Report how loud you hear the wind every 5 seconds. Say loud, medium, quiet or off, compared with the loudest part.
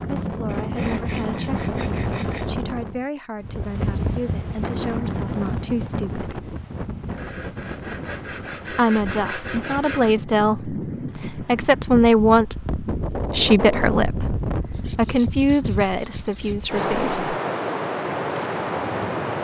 loud, medium, loud, loud.